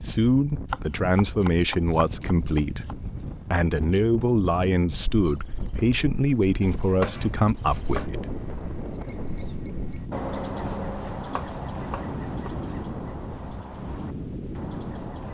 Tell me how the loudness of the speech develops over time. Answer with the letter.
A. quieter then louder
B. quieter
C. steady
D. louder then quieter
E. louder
C.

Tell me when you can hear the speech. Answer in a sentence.
You can hear the speech from 0.1 to 8.2 s.